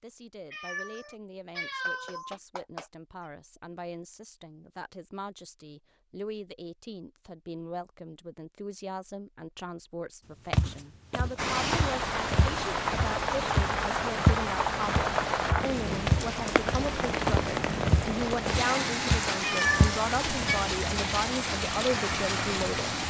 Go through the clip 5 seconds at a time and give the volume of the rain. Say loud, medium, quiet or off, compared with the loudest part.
off, off, loud, loud, loud.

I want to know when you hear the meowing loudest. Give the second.
20 s.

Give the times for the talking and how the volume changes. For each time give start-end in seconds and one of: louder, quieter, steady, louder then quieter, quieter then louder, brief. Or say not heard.
0.0-23.0 louder.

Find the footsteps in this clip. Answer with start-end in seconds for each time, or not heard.
10.5-20.6.